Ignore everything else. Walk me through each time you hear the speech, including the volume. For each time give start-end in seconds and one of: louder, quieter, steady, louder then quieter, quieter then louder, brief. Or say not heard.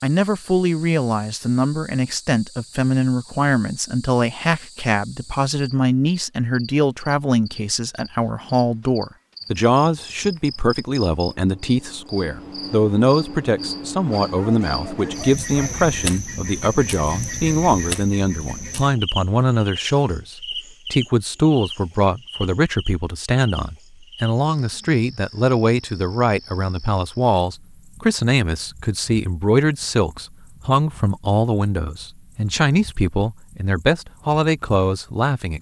0.0-35.5 steady.